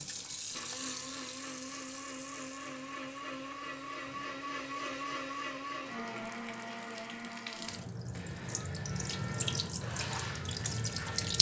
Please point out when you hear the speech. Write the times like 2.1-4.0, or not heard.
not heard.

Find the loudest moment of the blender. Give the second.
5 s.